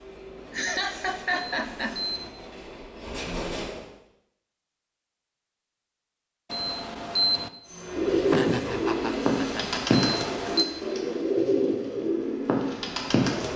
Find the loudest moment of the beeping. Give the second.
7 s.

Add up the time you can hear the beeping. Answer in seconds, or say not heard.
3 s.